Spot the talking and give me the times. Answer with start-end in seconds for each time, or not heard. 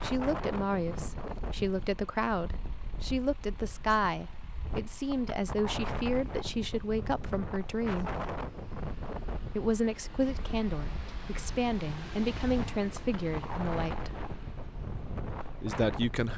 0.0-8.2, 9.6-14.2, 15.6-16.3.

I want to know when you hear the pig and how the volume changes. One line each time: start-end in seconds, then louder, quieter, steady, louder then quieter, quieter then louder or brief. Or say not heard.
not heard.